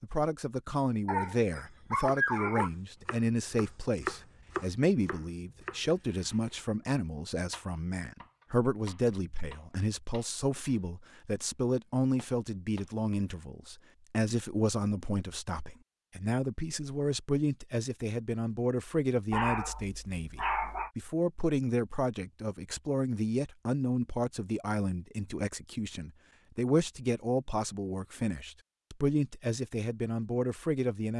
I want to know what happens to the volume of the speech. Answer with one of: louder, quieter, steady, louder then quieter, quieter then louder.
steady.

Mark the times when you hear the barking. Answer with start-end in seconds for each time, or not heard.
1.1-2.7, 19.3-20.9.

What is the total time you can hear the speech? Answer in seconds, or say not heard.
31 s.